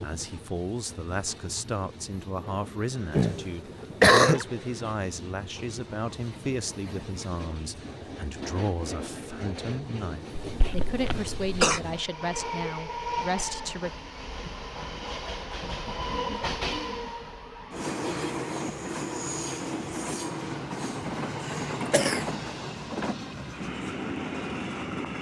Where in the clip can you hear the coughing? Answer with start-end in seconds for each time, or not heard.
3.1-4.5, 10.4-11.8, 21.5-22.2.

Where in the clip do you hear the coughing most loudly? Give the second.
4 s.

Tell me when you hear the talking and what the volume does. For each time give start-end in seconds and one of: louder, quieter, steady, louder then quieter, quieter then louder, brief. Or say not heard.
0.0-13.9 steady.